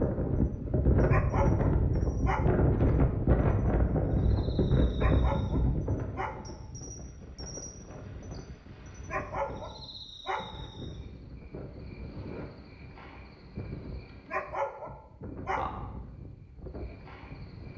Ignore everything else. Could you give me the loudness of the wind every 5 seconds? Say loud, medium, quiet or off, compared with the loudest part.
loud, medium, quiet, quiet.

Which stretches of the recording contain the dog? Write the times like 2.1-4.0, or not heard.
1.1-2.6, 5.0-6.6, 9.1-10.7, 14.2-15.9.